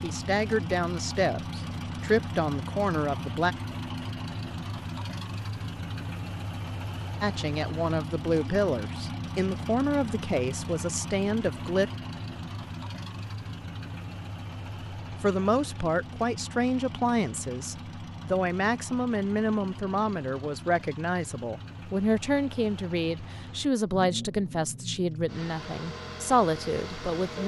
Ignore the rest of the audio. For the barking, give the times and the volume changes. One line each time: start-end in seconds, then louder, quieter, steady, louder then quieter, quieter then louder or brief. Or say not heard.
not heard.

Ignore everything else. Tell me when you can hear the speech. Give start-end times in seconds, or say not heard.
0.0-3.5, 7.2-11.9, 15.2-27.4.